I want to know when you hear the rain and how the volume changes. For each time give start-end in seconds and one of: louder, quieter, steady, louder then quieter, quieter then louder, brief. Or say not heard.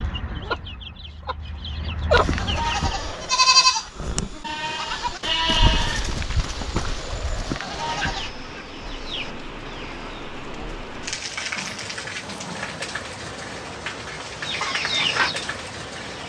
4.5-16.2 louder.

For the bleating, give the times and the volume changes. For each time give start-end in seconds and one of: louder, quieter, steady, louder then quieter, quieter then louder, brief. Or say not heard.
2.1-8.3 quieter.